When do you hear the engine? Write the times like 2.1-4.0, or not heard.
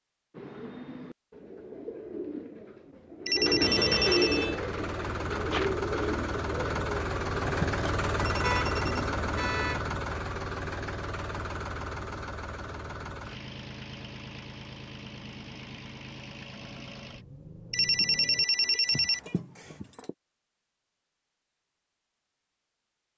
4.3-18.4.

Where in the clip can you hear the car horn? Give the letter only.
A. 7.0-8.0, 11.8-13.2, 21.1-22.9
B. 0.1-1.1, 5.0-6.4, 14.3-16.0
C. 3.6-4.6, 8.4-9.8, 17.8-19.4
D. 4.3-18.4
C.